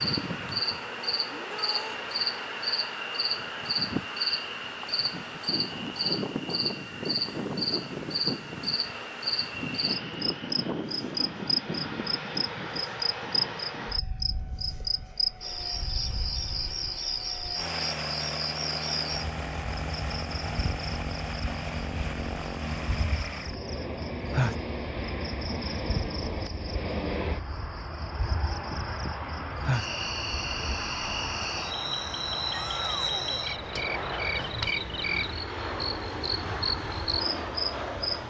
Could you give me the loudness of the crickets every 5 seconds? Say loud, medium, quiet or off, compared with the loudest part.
loud, loud, loud, loud, medium, medium, loud, loud.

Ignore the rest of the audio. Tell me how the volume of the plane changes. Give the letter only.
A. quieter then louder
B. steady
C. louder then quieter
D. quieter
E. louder
B.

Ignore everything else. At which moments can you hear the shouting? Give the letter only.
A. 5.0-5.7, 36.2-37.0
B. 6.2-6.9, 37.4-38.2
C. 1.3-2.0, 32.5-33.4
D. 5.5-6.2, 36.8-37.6
C.